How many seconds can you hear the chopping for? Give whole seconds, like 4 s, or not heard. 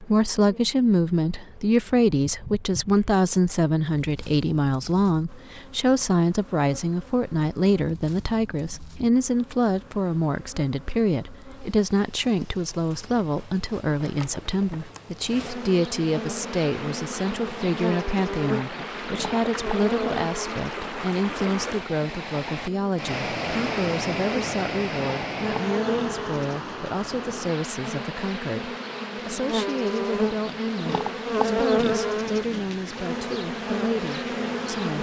not heard.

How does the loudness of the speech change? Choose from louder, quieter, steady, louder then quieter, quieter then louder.
quieter.